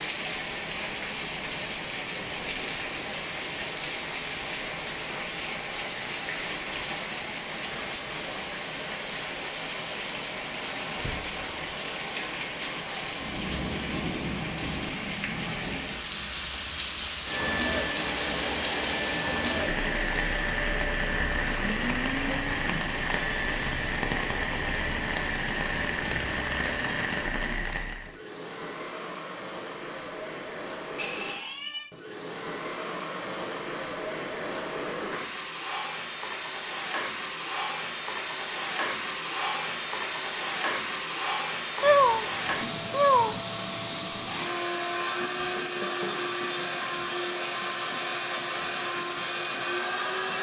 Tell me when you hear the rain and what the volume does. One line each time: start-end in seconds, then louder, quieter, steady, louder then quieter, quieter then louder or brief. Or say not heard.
0.0-28.2 steady.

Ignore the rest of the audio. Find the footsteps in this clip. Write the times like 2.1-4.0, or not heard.
not heard.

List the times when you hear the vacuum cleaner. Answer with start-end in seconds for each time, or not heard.
17.2-50.3.